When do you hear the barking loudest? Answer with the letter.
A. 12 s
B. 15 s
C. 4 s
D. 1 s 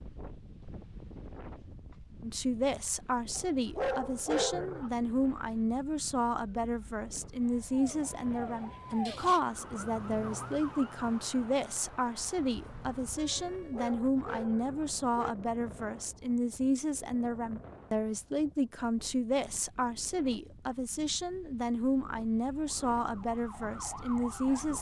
C.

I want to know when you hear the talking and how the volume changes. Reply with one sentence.
The talking can be heard from 2.2 to 24.7 s, at a steady volume.